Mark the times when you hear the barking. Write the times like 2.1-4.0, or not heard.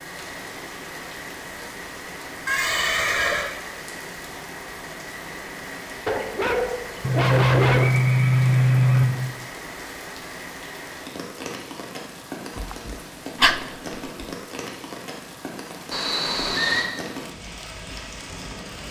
6.0-8.0, 12.6-13.6.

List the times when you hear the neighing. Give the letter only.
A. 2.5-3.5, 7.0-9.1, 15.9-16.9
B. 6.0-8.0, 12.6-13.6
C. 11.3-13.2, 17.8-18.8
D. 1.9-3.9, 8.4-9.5
A.